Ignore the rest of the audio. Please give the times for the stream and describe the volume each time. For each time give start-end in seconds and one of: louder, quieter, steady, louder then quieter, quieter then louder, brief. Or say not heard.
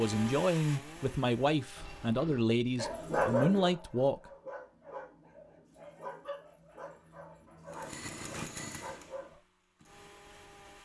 not heard.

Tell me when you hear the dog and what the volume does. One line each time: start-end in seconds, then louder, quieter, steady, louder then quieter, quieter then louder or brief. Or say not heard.
1.8-9.4 quieter.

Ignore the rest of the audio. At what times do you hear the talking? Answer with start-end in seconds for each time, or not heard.
0.0-4.2.